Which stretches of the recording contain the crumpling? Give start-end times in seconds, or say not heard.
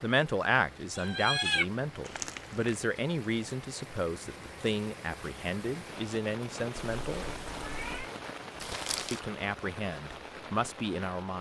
2.0-2.9, 8.6-9.2.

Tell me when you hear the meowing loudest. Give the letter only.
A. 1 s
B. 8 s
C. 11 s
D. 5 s
A.